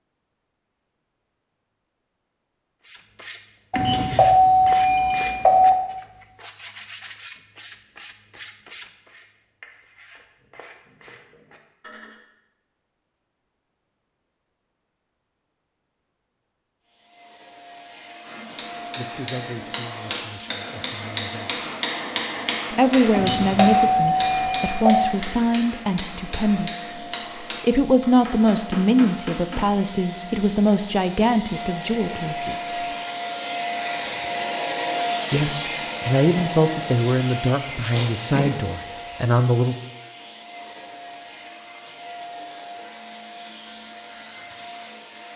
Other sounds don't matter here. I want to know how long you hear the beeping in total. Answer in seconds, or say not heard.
6 s.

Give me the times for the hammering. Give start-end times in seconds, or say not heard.
18.2-29.8.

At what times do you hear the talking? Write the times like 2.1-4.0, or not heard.
18.9-21.6, 22.7-32.8, 35.3-39.8.